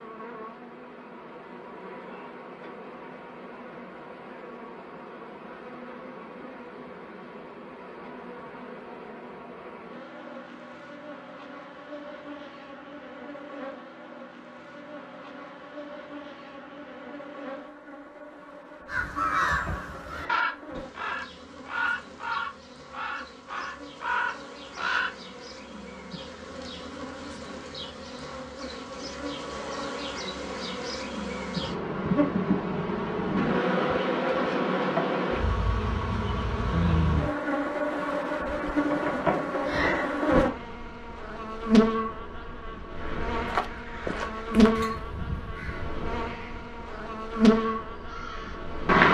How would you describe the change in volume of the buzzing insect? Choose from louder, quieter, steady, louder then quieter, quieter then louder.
louder.